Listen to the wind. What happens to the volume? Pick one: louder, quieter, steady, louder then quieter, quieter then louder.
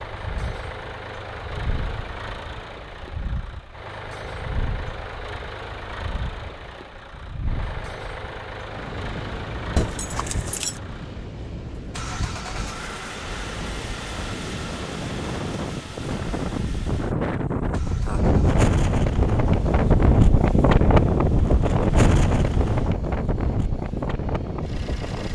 louder.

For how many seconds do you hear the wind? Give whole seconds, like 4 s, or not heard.
25 s.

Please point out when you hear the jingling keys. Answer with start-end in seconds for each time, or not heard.
9.8-10.8.